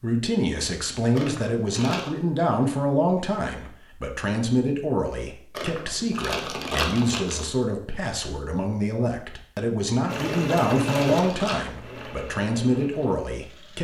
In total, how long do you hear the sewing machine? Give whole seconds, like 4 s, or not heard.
4 s.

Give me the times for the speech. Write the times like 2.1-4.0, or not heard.
0.0-13.7.